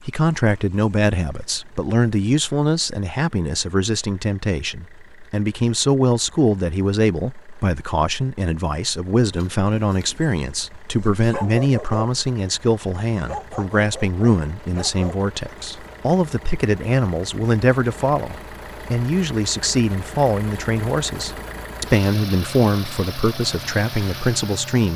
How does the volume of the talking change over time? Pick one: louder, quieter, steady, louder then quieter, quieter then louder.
steady.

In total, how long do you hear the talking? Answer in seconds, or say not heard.
25 s.